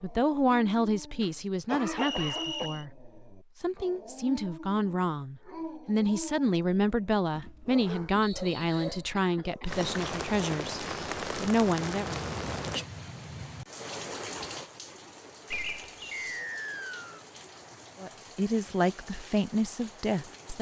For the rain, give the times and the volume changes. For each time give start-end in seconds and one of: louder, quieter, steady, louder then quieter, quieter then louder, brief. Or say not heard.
9.7-20.5 quieter.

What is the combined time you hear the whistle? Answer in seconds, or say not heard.
3 s.